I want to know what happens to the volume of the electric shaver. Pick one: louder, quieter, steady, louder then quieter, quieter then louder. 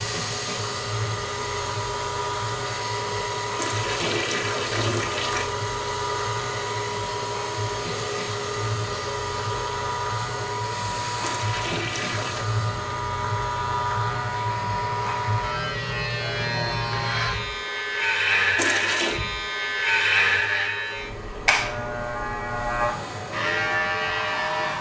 louder.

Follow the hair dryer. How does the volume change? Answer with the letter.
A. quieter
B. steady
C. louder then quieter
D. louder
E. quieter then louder
A.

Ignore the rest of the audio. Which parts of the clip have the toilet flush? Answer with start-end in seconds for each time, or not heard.
3.5-5.5, 11.2-12.4, 18.6-19.2.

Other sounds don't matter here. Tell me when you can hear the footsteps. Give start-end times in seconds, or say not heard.
not heard.